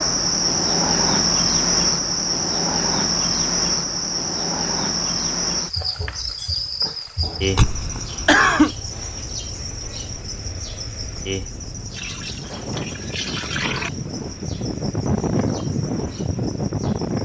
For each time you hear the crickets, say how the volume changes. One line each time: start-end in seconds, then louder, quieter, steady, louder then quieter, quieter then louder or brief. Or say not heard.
0.0-17.2 quieter.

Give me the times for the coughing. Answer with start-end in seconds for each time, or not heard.
7.5-8.8.